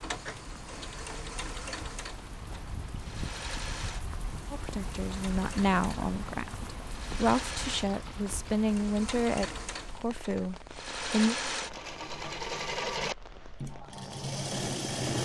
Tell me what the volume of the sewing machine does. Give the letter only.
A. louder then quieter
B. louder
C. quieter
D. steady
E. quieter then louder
B.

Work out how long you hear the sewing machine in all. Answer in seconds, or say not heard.
15 s.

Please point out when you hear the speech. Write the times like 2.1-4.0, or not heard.
4.5-11.3.